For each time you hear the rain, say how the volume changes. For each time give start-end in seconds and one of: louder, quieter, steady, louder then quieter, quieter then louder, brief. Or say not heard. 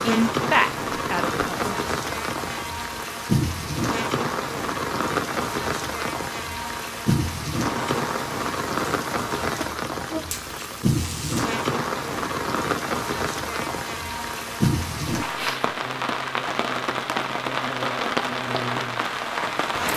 0.0-19.9 steady.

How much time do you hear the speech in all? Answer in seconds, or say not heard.
2 s.